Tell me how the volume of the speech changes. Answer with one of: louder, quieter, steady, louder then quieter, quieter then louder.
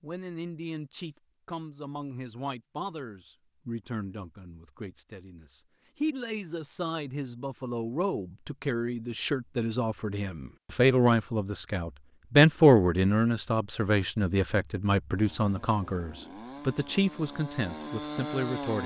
louder then quieter.